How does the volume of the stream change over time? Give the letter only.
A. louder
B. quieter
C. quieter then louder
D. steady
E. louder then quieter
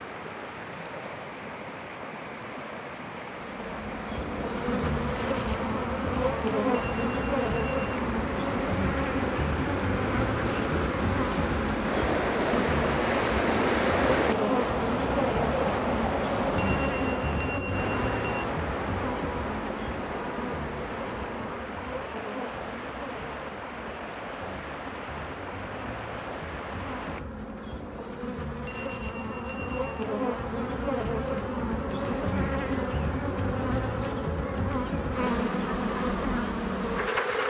E.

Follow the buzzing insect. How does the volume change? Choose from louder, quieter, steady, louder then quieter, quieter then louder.
quieter then louder.